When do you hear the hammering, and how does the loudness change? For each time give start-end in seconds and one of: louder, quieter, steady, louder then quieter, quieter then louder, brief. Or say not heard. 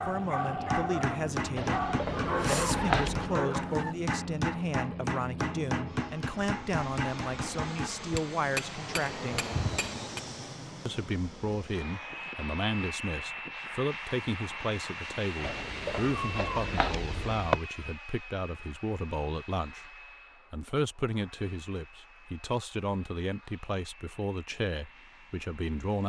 0.5-10.2 steady.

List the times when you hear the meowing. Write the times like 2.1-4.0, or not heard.
1.6-3.3, 15.4-17.6.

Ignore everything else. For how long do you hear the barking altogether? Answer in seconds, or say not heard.
4 s.